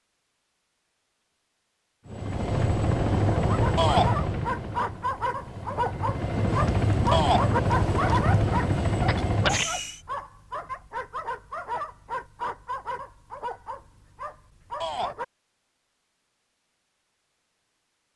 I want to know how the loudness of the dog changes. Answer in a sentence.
The volume of the dog goes down.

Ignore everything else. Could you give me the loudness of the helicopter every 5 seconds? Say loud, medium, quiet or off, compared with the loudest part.
loud, loud, off, off.